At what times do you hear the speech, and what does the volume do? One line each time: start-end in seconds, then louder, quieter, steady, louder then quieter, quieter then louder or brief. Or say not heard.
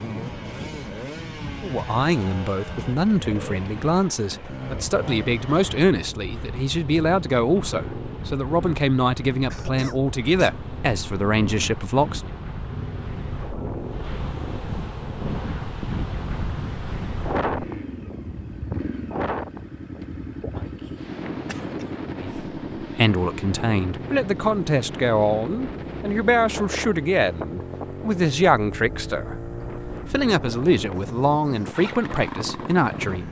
1.6-12.3 steady
22.1-33.2 steady.